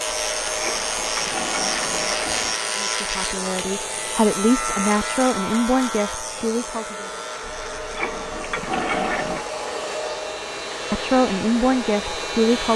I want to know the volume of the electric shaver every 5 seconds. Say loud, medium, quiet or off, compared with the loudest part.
loud, medium, medium.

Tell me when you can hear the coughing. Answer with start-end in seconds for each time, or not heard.
not heard.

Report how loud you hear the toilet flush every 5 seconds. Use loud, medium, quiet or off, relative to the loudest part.
loud, loud, off.